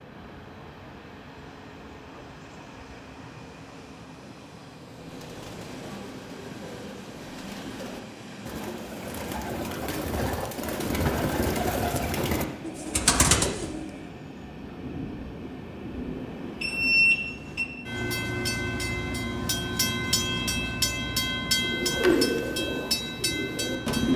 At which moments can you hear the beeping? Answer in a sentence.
The beeping can be heard from 16.6 to 17.6 s.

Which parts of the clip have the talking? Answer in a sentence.
The talking can't be heard in this clip.